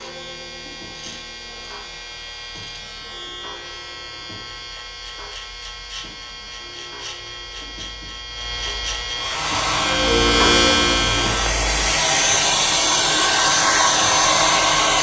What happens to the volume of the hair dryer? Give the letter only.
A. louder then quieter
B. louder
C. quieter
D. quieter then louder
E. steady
B.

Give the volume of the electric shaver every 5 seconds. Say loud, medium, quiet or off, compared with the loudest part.
quiet, medium, loud.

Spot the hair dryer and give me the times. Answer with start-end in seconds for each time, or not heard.
9.2-14.9.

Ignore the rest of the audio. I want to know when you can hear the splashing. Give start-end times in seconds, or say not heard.
not heard.